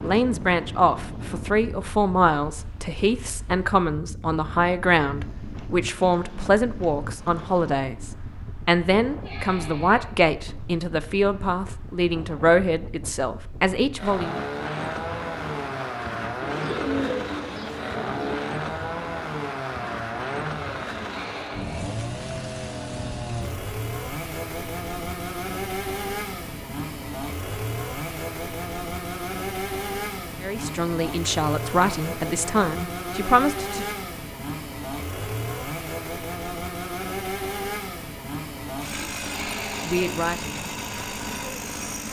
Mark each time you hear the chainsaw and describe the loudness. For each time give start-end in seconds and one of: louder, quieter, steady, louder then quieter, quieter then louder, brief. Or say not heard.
13.9-42.0 steady.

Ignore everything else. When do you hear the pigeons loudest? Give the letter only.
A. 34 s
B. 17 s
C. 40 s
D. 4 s
B.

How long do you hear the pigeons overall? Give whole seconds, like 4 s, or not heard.
2 s.